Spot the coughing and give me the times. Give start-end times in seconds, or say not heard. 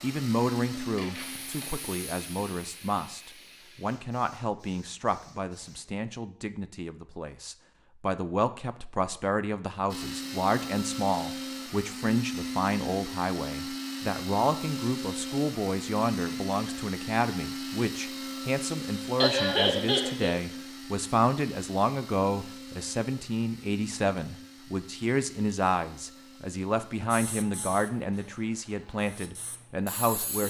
19.2-20.4.